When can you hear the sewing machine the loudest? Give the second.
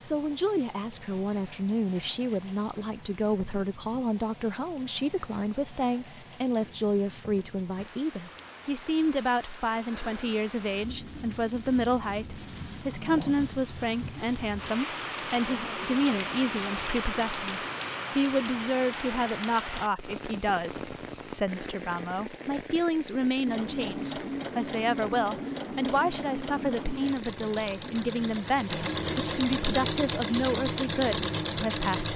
31 s.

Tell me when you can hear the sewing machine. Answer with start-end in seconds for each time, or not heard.
23.4-32.1.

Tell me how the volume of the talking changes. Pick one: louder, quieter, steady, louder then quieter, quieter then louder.
steady.